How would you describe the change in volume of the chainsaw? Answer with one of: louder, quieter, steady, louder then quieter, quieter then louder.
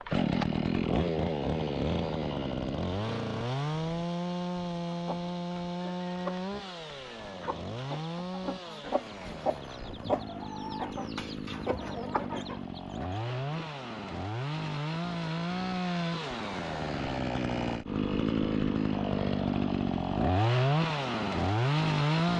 quieter then louder.